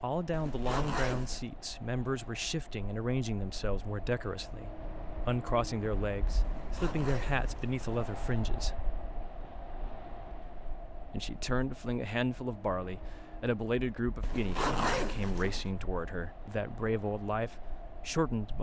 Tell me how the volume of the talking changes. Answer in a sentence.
The volume of the talking stays about the same.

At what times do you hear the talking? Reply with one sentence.
The talking can be heard from 0.0 to 8.8 s and from 11.1 to 18.5 s.